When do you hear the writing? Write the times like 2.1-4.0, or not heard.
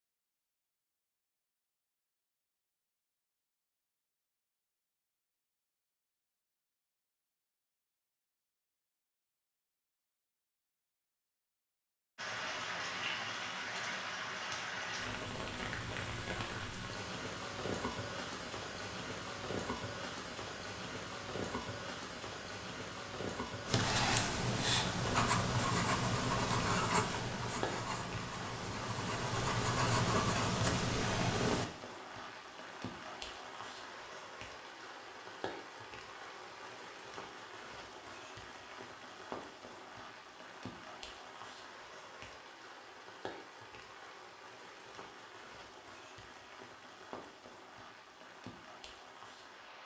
23.6-31.6.